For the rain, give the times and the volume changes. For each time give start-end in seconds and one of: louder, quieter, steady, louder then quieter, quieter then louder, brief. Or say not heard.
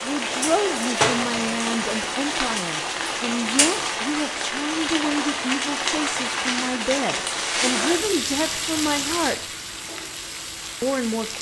0.0-11.3 quieter.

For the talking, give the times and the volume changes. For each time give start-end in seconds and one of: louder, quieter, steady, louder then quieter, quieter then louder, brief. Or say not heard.
0.0-9.4 steady
10.8-11.3 brief.